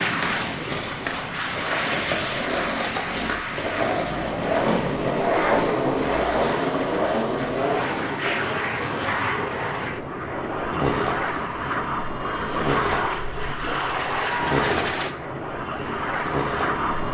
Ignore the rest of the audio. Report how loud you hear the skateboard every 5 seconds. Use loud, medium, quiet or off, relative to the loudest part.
loud, loud, medium, medium.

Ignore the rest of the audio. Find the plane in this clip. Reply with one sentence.
The plane can be heard from 0.0 to 17.1 s.